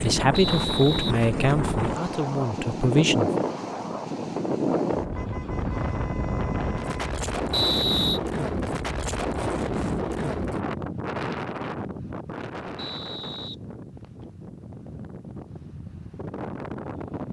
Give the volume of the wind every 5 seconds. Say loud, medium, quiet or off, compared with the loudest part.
loud, loud, medium, medium.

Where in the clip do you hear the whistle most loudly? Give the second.
8 s.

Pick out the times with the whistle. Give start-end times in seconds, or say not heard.
0.3-1.1, 7.5-8.2, 12.8-14.2.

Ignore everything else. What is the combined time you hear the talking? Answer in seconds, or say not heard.
3 s.